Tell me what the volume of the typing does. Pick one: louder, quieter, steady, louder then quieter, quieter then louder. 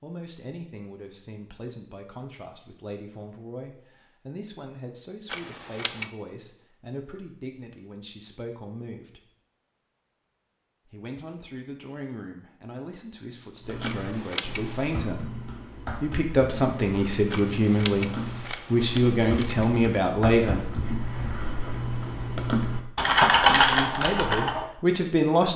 louder.